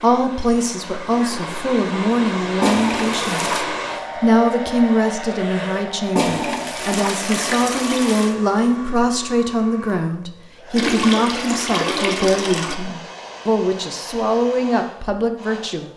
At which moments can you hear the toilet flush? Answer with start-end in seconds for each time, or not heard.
2.6-3.6, 6.2-8.3, 10.8-12.8.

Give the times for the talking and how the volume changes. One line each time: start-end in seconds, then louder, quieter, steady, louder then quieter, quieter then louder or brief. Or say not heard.
0.0-15.9 steady.